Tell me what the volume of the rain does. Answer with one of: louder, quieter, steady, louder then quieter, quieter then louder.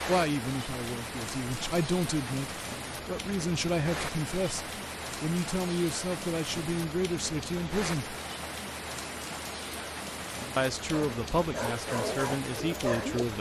steady.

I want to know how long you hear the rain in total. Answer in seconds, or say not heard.
13 s.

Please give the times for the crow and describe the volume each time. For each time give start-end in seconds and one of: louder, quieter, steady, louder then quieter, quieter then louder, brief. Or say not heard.
not heard.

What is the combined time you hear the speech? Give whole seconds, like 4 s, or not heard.
11 s.